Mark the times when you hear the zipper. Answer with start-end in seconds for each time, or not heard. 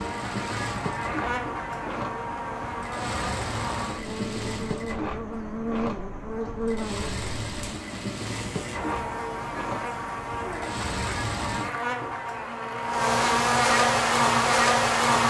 not heard.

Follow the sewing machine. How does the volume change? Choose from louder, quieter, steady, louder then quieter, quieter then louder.
steady.